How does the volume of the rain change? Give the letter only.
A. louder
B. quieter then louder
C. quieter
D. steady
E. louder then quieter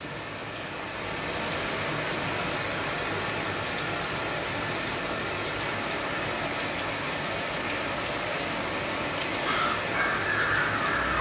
D.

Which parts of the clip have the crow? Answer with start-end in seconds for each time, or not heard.
9.4-11.1.